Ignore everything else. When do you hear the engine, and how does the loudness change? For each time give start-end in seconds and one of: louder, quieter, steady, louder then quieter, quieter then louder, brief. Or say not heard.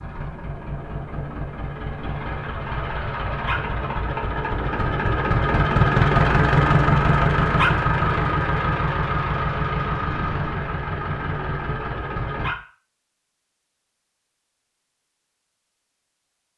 0.0-12.6 louder then quieter.